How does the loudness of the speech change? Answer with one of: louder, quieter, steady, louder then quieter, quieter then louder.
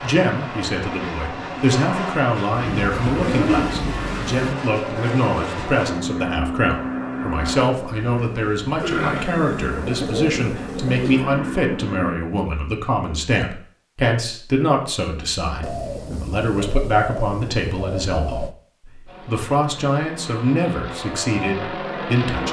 steady.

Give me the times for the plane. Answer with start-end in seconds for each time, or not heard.
0.0-12.2, 19.1-22.4.